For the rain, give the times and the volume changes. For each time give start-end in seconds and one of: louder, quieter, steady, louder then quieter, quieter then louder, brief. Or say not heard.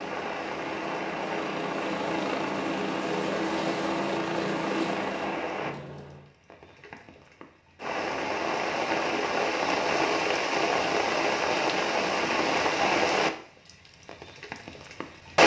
0.0-15.4 louder.